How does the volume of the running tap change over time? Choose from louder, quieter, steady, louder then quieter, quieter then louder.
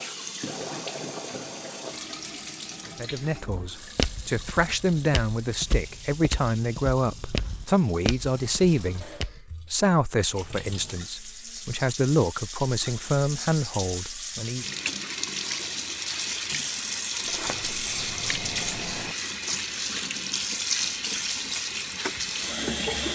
quieter then louder.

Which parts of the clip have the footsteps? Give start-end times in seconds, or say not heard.
3.5-9.4.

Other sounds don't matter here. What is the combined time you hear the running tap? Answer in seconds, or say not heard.
23 s.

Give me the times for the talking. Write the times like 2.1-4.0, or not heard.
3.0-14.7.